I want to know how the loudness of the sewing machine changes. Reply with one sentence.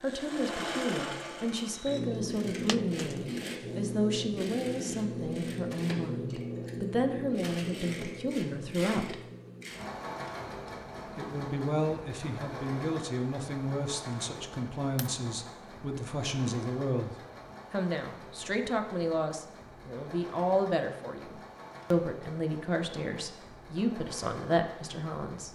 The loudness of the sewing machine goes down.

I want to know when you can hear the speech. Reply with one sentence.
You can hear the speech from 0.0 to 9.2 s and from 11.2 to 25.4 s.